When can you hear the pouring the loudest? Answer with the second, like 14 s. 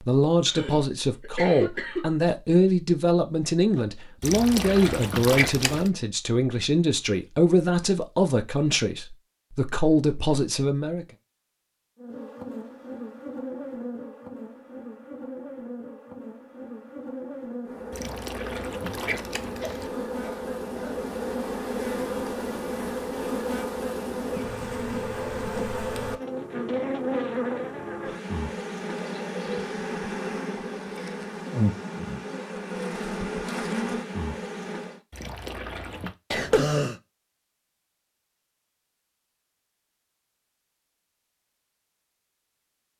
5 s.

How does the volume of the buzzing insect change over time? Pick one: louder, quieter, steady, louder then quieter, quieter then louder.
louder.